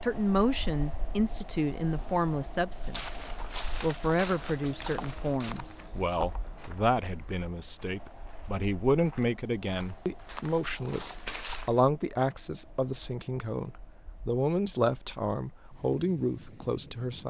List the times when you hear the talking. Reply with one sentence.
The talking can be heard from 0.0 to 3.0 s and from 3.8 to 17.2 s.